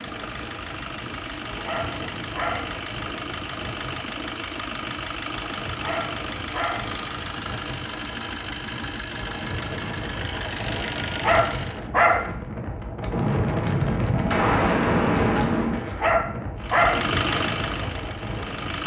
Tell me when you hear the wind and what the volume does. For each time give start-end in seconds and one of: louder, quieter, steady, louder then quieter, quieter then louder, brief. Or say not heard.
0.0-18.8 louder.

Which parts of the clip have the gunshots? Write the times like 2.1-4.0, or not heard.
13.1-15.8.